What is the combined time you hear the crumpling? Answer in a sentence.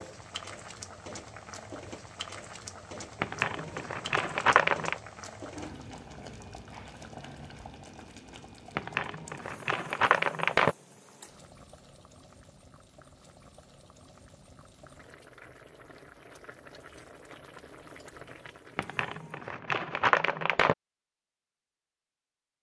The crumpling can be heard for 6 seconds in total.